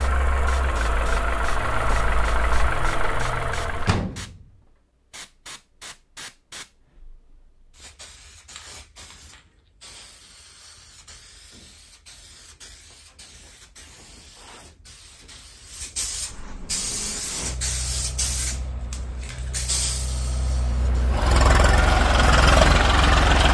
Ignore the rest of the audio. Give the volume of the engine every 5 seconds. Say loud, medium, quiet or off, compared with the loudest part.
medium, off, off, quiet, loud.